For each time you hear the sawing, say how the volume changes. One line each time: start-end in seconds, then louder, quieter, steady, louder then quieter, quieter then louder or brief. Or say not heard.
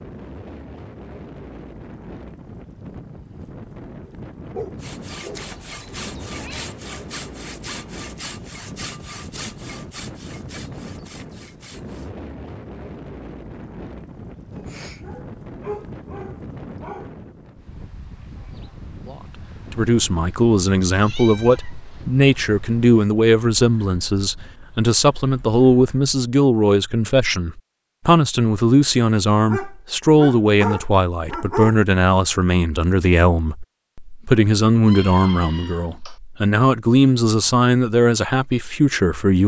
4.8-12.1 quieter.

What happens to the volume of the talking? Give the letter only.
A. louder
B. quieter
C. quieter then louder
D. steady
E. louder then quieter
D.